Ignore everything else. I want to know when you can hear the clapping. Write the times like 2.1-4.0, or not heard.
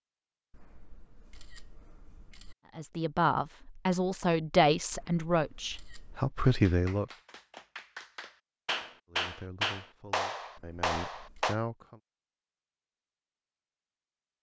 6.5-11.6.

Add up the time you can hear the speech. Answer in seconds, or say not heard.
7 s.